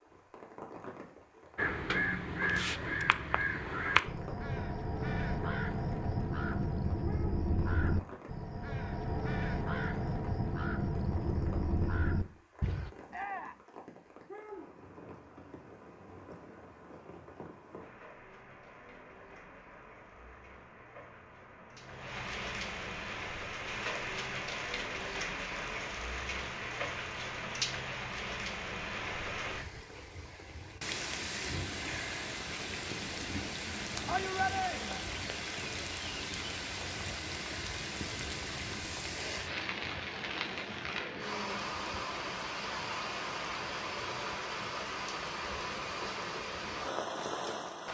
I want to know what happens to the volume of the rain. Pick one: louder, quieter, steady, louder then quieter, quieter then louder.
louder.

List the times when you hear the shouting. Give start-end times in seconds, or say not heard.
13.1-13.7, 34.0-35.0.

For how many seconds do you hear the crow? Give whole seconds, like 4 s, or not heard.
11 s.